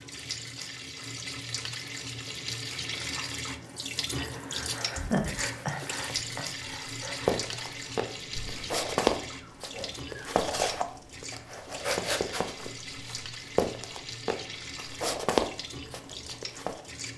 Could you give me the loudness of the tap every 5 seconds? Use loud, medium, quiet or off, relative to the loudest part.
loud, loud, medium, medium.